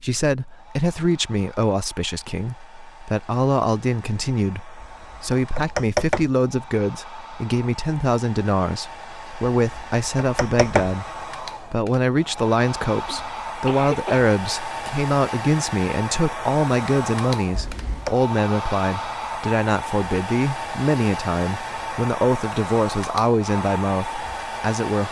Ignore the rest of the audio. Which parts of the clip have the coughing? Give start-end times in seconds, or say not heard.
13.1-14.2.